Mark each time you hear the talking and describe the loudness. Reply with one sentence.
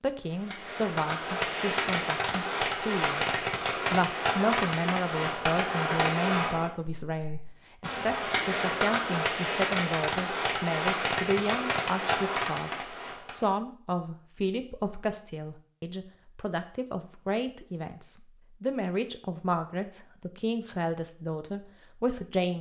You can hear the talking from 0.0 to 22.5 s, at a steady volume.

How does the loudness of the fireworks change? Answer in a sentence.
The loudness of the fireworks stays about the same.